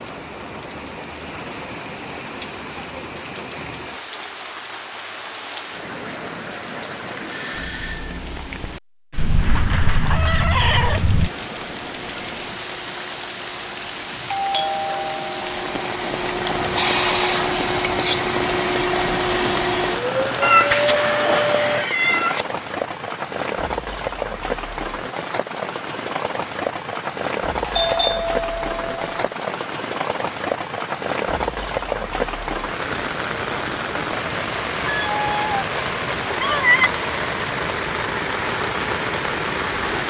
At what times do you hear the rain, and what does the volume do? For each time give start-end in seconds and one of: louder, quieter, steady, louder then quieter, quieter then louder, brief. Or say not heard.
0.0-40.0 louder.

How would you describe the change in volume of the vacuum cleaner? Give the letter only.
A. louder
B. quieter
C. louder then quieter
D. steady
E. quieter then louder
A.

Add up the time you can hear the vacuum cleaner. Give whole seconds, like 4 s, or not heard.
11 s.